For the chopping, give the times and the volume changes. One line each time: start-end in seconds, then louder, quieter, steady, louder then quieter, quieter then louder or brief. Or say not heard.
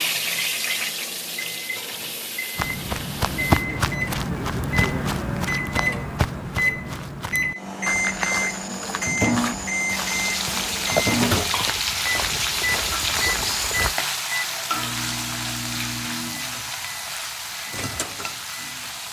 not heard.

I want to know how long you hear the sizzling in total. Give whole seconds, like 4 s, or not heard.
13 s.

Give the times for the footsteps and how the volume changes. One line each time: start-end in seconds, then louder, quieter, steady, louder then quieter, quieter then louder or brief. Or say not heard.
2.5-13.9 quieter.